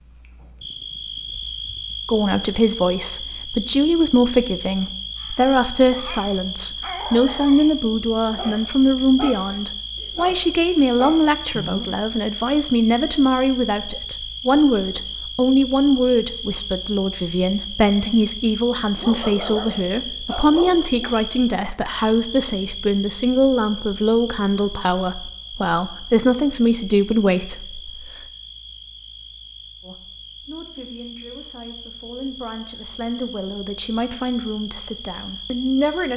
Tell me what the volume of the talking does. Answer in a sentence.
The loudness of the talking goes down.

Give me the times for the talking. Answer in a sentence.
You can hear the talking from 2.0 to 28.2 s and from 29.8 to 36.1 s.